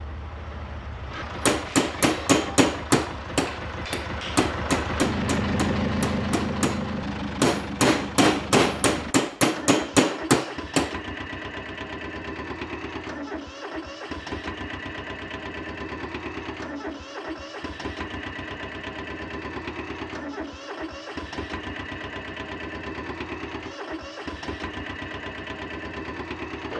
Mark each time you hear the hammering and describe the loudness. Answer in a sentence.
You can hear the hammering from 1.4 to 10.9 s, getting quieter then louder.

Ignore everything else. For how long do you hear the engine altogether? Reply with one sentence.
The engine can be heard for 27 seconds in total.